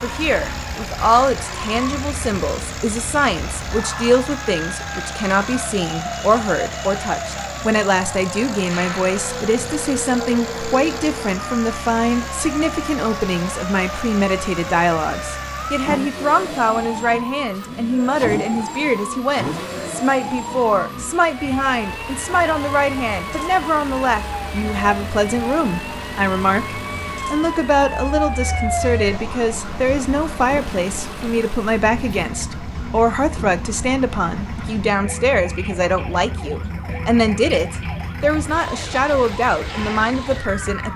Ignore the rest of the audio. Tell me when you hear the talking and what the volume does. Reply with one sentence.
The talking can be heard from 0.0 to 40.9 s, at a steady volume.